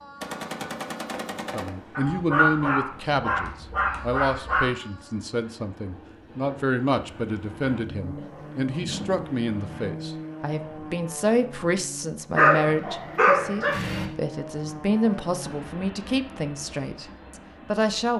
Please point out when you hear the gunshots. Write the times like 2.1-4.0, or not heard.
0.2-2.2.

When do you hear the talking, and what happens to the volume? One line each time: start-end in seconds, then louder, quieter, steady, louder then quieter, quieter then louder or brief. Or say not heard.
1.5-17.1 steady
17.6-18.1 brief.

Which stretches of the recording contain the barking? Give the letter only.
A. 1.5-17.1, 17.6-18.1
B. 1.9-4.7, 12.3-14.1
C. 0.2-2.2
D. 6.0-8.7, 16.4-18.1
B.